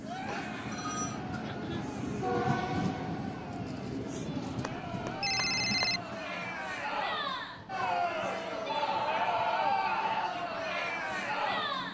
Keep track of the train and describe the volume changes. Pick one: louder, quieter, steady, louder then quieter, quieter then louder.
quieter.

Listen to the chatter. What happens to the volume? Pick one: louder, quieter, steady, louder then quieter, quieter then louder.
louder.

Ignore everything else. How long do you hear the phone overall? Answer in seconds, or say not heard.
4 s.